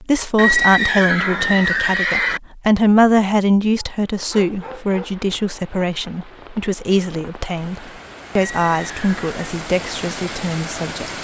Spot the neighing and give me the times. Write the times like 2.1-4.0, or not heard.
0.3-2.4, 8.3-9.3.